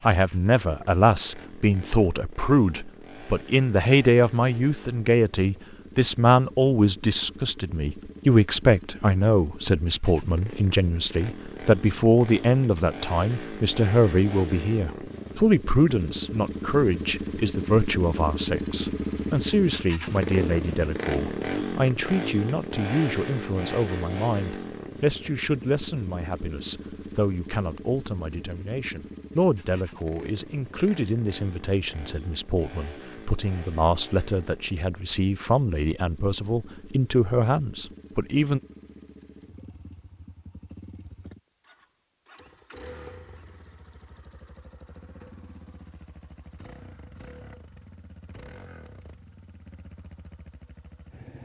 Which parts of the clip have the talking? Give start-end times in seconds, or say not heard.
0.1-38.6.